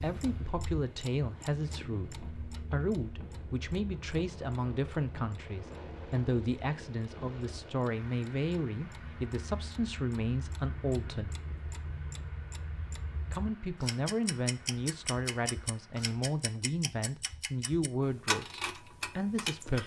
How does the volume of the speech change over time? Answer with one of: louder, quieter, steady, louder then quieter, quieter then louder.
steady.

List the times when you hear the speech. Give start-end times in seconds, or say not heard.
0.0-11.3, 13.3-19.8.